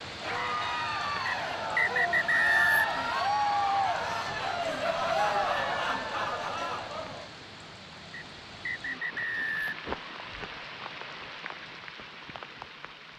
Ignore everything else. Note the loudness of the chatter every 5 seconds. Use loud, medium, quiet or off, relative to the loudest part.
loud, loud, off.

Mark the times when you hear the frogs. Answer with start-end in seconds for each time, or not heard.
not heard.